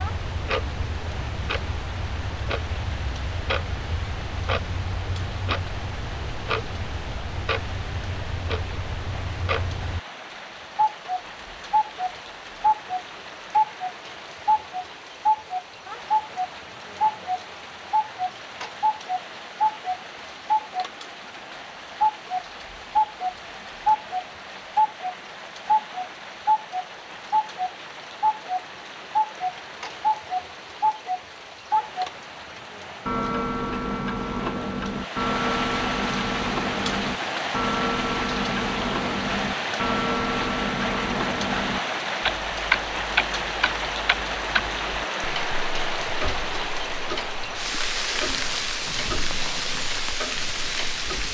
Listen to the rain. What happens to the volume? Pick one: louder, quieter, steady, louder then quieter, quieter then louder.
louder.